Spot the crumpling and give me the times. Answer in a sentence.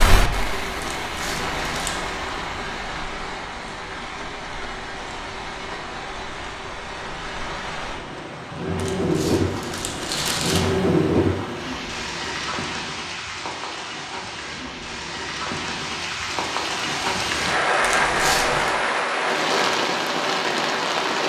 The crumpling can be heard from 0.9 to 2.0 s, from 8.8 to 10.7 s and from 17.8 to 18.8 s.